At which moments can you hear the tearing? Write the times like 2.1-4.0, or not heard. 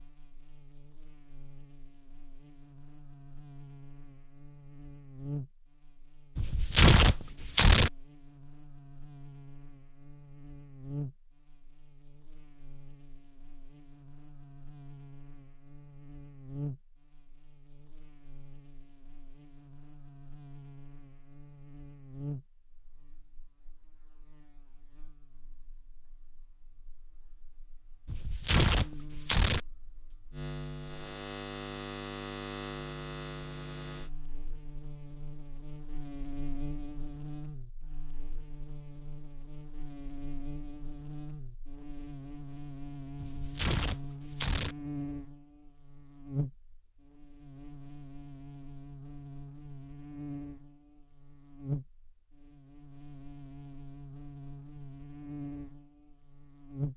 6.3-7.9, 28.1-29.6, 43.1-44.8.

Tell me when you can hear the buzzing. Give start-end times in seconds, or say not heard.
0.0-56.9.